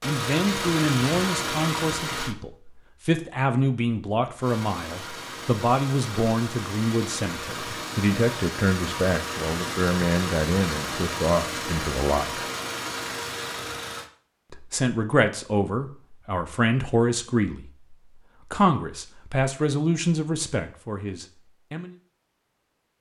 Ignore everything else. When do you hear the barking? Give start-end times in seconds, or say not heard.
not heard.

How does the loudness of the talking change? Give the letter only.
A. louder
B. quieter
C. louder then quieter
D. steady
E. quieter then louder
D.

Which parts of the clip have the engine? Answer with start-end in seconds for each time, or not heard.
0.0-2.4, 4.4-14.1.